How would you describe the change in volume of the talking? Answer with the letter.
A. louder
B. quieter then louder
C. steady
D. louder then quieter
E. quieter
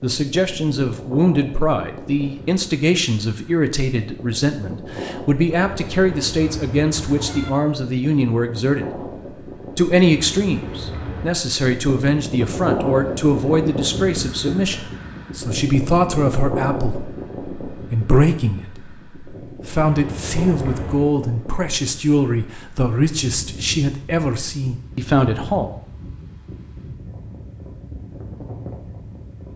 C.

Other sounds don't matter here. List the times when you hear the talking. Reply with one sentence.
You can hear the talking from 0.0 to 9.0 s and from 9.8 to 25.7 s.